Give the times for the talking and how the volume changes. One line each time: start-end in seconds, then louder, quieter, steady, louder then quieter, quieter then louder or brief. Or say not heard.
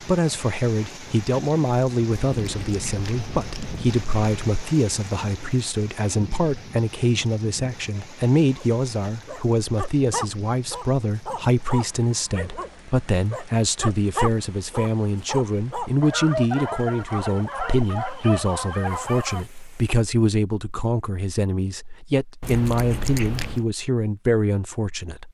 0.0-25.3 steady.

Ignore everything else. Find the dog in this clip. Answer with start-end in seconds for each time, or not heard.
8.6-19.4.